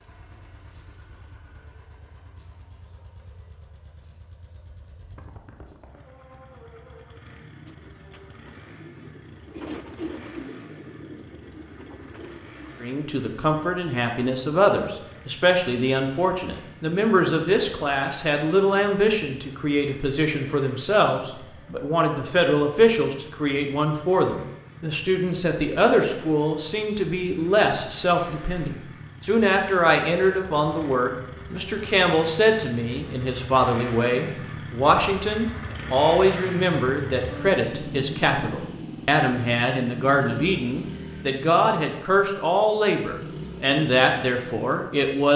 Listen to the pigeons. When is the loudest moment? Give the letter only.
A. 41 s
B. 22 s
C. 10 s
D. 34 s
C.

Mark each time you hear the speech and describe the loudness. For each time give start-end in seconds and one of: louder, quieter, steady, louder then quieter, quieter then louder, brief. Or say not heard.
12.8-45.3 steady.